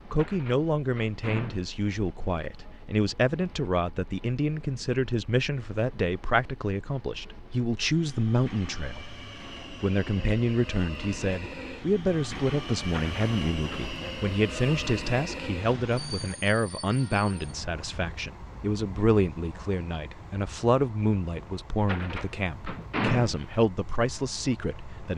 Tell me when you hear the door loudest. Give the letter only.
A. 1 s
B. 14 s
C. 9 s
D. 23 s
D.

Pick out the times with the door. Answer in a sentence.
The door can be heard from 0.1 to 1.8 s, from 12.8 to 13.8 s and from 21.8 to 23.4 s.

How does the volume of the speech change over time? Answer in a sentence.
The volume of the speech stays about the same.